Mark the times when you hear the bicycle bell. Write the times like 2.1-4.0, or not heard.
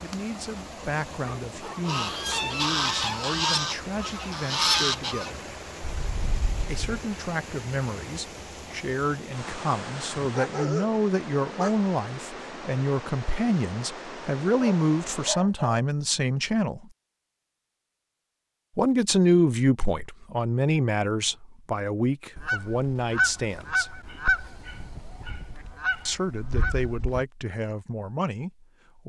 not heard.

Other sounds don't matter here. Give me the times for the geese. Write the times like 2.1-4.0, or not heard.
1.8-7.0, 22.4-27.2.